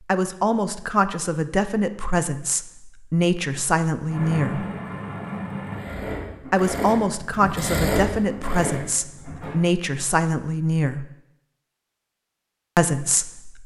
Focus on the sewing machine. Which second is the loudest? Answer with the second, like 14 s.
8 s.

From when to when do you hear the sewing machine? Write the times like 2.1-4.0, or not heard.
4.0-9.6.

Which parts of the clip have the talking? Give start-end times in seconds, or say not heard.
0.1-4.7, 6.5-11.1, 12.8-13.6.